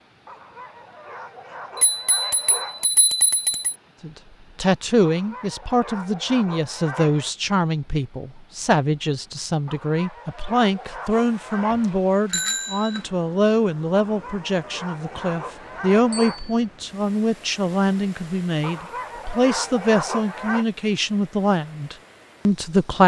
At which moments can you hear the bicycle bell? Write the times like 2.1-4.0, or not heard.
1.8-3.8, 11.1-13.1, 16.1-16.6.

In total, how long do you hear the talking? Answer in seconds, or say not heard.
19 s.